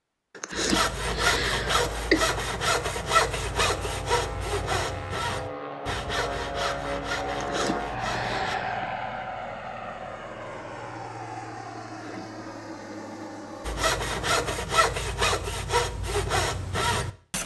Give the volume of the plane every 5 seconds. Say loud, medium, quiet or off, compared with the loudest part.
medium, loud, medium, off.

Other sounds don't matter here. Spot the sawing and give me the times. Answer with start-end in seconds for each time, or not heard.
0.5-8.6, 13.7-17.4.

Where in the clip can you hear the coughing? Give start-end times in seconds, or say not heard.
0.3-2.2, 7.3-8.8, 11.8-12.3.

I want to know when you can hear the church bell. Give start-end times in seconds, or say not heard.
not heard.